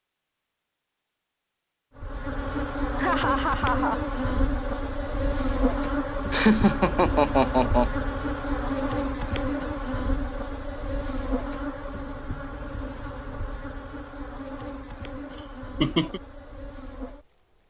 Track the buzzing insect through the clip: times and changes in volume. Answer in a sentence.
You can hear the buzzing insect from 1.9 to 17.6 s, getting quieter.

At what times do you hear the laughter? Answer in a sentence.
You can hear the laughter from 3.0 to 4.0 s, from 6.3 to 7.9 s and from 14.9 to 16.2 s.